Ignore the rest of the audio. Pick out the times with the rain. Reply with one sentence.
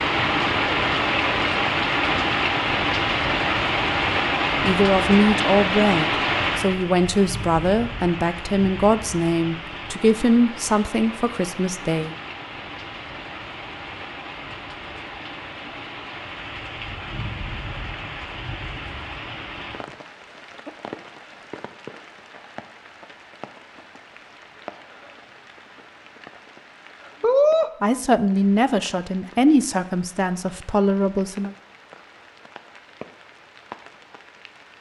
The rain can be heard from 0.0 to 34.7 s.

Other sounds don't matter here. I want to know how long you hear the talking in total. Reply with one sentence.
You can hear the talking for 11 seconds altogether.